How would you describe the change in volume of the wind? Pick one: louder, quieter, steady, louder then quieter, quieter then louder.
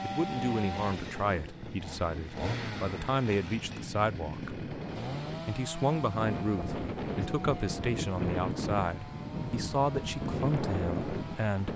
louder.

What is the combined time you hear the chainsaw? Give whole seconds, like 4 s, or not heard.
12 s.